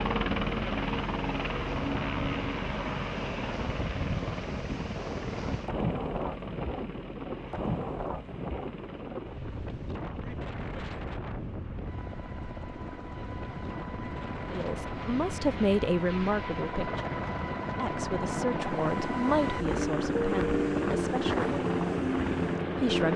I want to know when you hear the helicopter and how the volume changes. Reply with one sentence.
The helicopter can be heard from 0.0 to 23.1 s, getting quieter then louder.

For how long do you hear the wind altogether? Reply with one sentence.
The wind can be heard for 23 seconds in total.